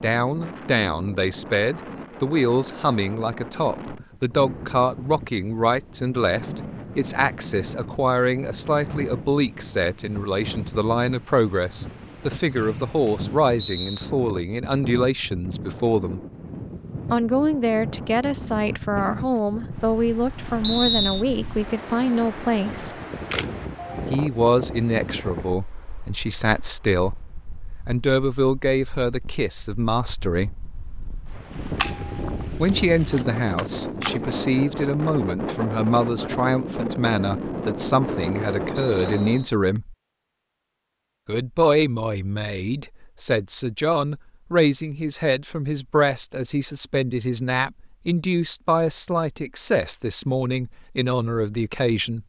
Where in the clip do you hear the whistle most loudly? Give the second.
21 s.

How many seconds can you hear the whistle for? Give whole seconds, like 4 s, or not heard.
3 s.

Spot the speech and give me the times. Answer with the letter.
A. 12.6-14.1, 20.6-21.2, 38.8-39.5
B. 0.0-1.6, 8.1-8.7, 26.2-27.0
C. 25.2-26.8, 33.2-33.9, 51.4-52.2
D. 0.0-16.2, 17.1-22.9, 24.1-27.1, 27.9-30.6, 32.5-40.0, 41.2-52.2
D.